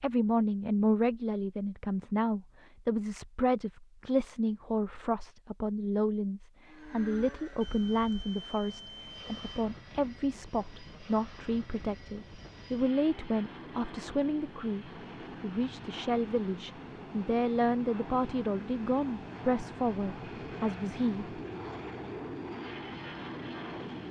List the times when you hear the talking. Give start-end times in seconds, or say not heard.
0.0-21.4.